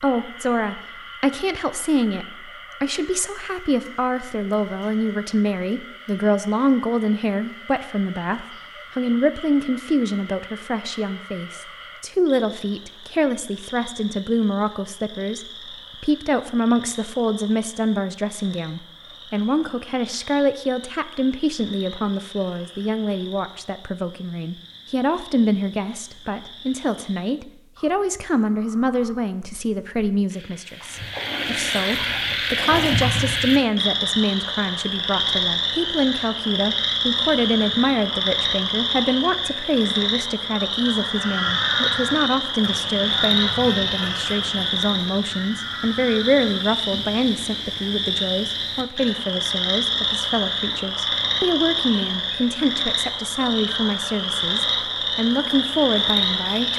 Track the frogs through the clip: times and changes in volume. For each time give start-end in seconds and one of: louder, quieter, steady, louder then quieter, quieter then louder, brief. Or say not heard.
0.0-56.7 louder.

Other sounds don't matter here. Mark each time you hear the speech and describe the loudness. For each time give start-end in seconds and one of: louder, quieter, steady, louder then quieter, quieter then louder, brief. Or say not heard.
0.0-56.7 steady.